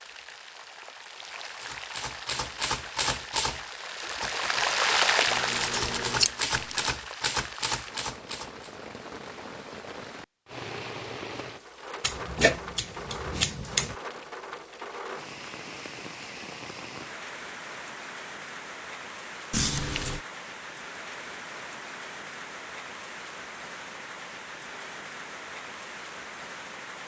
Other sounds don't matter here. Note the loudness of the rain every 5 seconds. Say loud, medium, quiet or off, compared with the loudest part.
loud, loud, medium, medium, medium, medium.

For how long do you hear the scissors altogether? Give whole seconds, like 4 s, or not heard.
4 s.